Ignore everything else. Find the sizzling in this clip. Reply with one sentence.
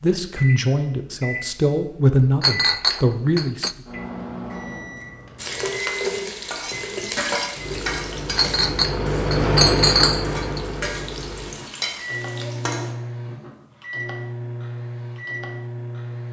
You can hear the sizzling from 5.3 to 12.9 s.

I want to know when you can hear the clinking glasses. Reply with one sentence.
The clinking glasses can be heard from 2.4 to 3.8 s and from 8.3 to 10.6 s.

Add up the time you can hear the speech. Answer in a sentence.
You can hear the speech for 4 seconds altogether.